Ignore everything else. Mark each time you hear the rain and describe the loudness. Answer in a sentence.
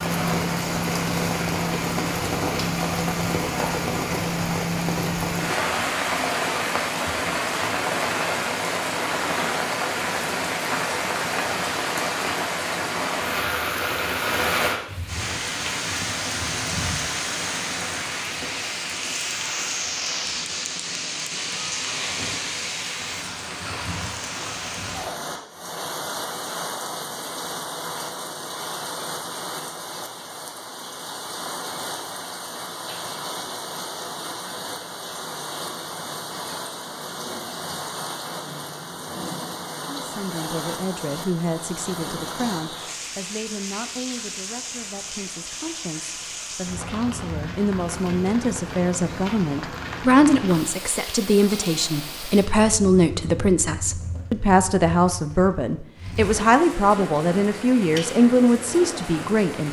The rain can be heard from 0.0 to 59.6 s, getting quieter.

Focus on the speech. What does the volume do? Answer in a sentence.
The volume of the speech goes up.